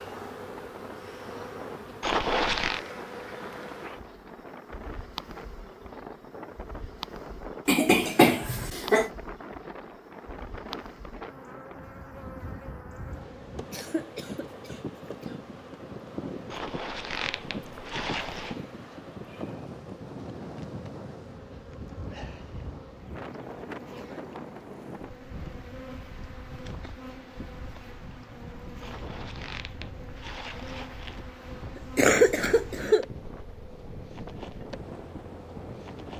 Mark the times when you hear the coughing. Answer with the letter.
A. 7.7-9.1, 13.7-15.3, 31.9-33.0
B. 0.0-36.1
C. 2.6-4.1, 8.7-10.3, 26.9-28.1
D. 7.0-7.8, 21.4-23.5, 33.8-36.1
A.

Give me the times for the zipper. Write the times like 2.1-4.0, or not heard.
2.0-2.9, 16.5-18.6, 28.8-31.2.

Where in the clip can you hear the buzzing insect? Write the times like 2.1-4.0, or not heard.
0.0-36.1.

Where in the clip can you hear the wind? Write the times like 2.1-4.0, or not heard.
0.0-36.1.